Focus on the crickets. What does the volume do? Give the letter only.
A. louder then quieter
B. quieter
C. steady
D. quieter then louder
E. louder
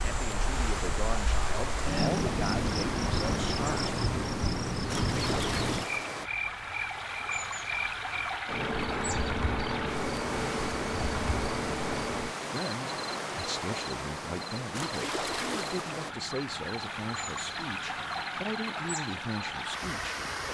B.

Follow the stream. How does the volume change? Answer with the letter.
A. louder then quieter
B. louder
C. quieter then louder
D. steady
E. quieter
D.